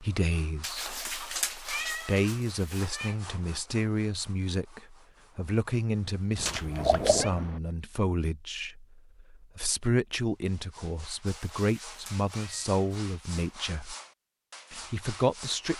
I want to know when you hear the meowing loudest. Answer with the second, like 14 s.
7 s.